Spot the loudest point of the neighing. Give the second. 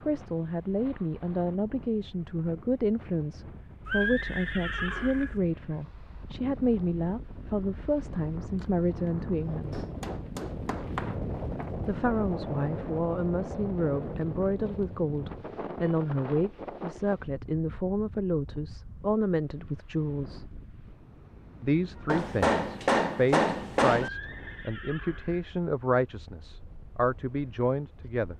4 s.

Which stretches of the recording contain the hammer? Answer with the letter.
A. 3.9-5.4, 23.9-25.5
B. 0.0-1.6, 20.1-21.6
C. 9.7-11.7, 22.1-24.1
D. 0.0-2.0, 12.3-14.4
C.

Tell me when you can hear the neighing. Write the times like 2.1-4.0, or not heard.
3.9-5.4, 23.9-25.5.